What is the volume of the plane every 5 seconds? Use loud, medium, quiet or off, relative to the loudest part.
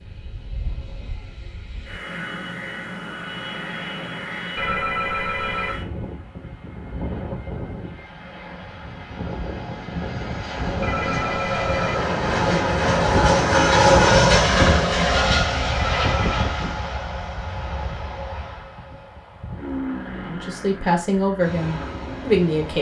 quiet, quiet, loud, medium, quiet.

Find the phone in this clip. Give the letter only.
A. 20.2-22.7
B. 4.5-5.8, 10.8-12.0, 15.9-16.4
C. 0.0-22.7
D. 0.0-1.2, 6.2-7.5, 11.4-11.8
B.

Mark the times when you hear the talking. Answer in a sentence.
The talking can be heard from 20.2 to 22.7 s.